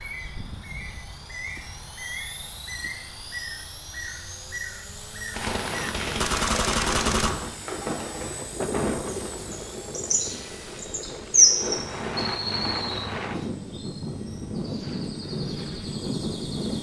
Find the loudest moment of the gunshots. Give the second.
7 s.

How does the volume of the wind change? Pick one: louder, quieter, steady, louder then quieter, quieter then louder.
quieter then louder.